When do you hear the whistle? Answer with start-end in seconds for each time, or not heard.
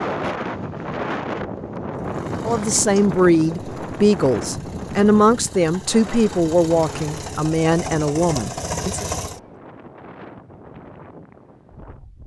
not heard.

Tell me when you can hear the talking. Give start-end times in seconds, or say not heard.
2.5-9.1.